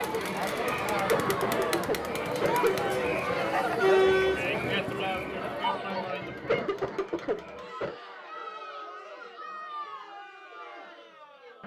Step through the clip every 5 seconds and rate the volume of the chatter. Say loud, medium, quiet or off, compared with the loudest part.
loud, medium, quiet.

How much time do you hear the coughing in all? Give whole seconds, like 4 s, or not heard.
3 s.